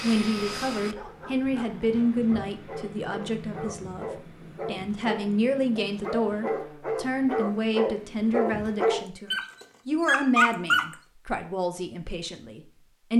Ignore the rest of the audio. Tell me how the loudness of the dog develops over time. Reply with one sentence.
The loudness of the dog goes up.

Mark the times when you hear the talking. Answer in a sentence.
The talking can be heard from 0.0 to 13.1 s.